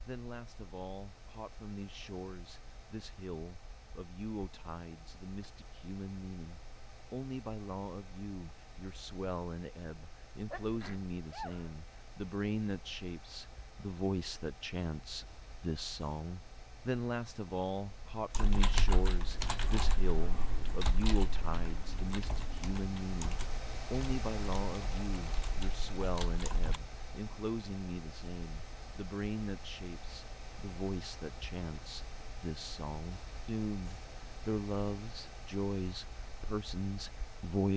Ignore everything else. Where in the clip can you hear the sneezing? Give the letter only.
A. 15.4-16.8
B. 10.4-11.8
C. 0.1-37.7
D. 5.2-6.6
B.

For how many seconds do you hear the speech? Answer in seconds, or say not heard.
38 s.